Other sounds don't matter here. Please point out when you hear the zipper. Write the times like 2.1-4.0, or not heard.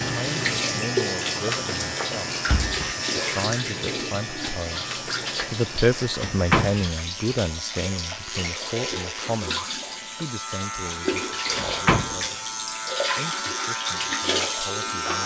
not heard.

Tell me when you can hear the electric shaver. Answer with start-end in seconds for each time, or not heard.
0.0-15.2.